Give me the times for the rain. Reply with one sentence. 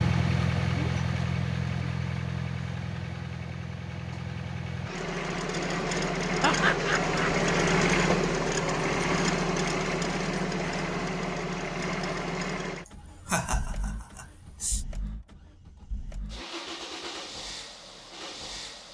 You can't hear the rain here.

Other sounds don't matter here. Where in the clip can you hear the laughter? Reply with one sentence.
The laughter can be heard from 6.4 to 7.3 s and from 13.2 to 14.8 s.